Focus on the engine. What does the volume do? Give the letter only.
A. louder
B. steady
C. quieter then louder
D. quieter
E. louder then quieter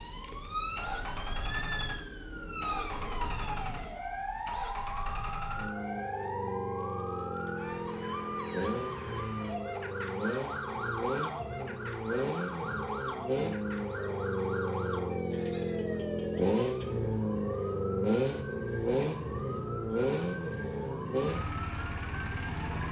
A.